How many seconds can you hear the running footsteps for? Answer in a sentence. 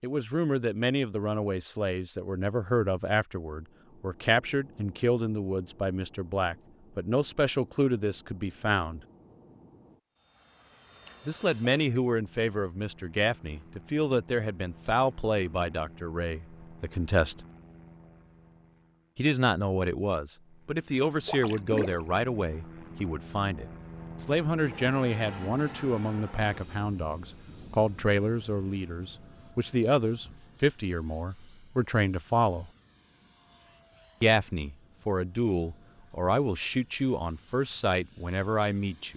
The running footsteps can't be heard in this clip.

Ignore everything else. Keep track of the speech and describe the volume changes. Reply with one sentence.
The loudness of the speech stays about the same.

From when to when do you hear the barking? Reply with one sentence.
The barking can't be heard in this clip.